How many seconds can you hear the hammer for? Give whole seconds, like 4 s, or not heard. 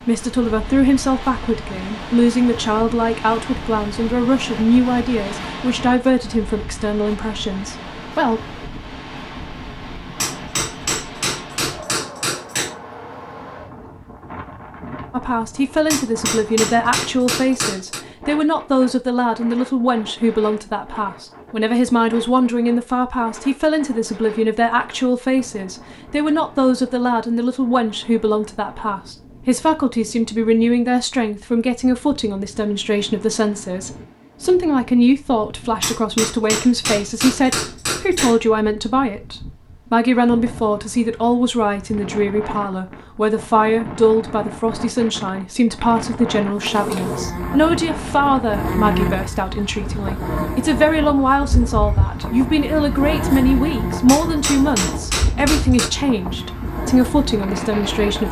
9 s.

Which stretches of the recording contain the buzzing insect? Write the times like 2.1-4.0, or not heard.
46.5-58.2.